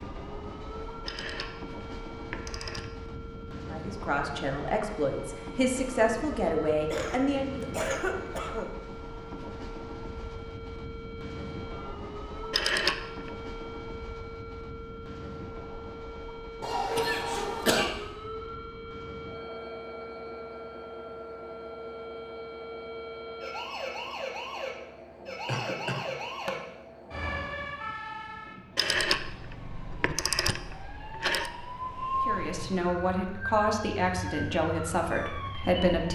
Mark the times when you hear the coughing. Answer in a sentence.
The coughing can be heard from 6.8 to 8.7 s, from 16.6 to 17.9 s and from 25.4 to 26.5 s.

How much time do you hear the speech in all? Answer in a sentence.
You can hear the speech for 8 seconds altogether.